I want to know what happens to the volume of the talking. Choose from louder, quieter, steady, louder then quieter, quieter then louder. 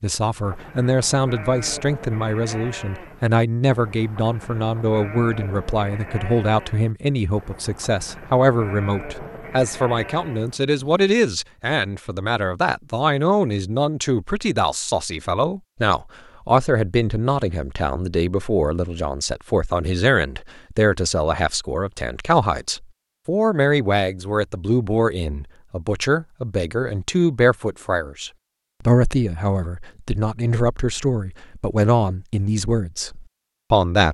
steady.